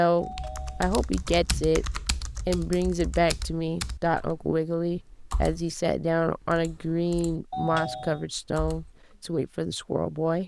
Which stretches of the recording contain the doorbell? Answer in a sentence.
The doorbell can be heard from 0.1 to 1.7 s and from 7.5 to 8.2 s.